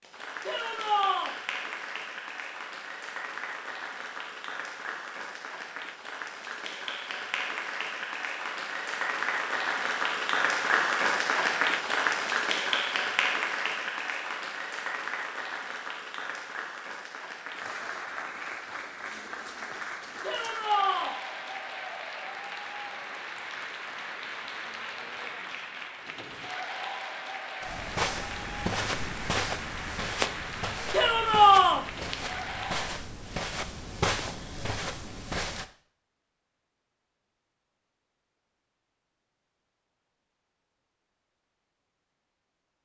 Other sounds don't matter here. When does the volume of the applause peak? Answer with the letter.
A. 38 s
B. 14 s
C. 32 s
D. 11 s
D.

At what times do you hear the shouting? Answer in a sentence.
The shouting can be heard from 0.5 to 1.4 s, from 20.2 to 21.1 s and from 30.9 to 31.9 s.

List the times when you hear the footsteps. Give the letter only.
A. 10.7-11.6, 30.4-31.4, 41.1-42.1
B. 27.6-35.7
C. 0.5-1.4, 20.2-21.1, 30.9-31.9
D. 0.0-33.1
B.